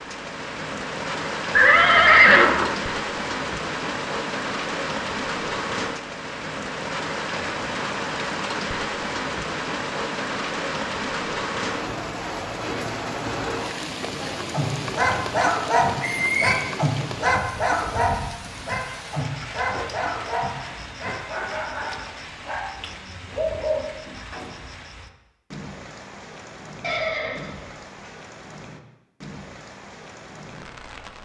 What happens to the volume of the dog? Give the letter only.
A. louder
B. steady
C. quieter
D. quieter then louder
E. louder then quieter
C.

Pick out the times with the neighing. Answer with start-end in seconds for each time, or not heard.
1.6-2.7, 16.0-16.6, 26.8-28.1.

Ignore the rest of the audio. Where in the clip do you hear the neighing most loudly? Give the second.
2 s.